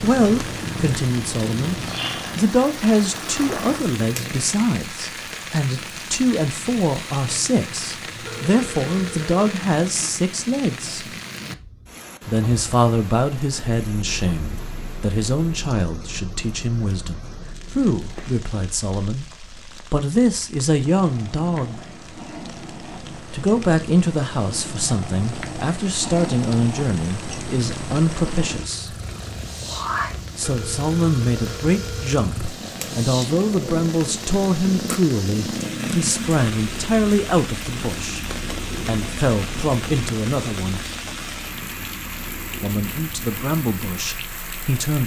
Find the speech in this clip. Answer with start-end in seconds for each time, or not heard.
0.0-11.1, 12.2-21.8, 23.3-28.9, 30.4-38.2, 38.9-40.9, 42.6-45.0.